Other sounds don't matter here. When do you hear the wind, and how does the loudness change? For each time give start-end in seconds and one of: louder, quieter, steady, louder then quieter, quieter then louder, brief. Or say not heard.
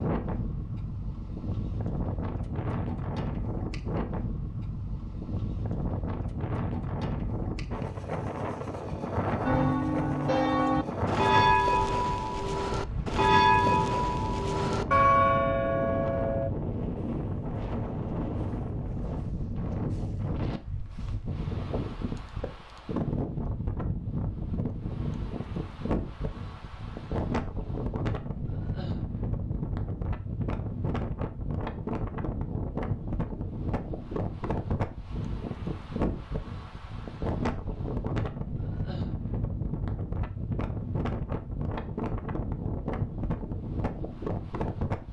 0.0-45.0 steady.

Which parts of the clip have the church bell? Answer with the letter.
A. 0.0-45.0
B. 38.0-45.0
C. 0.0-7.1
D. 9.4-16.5
D.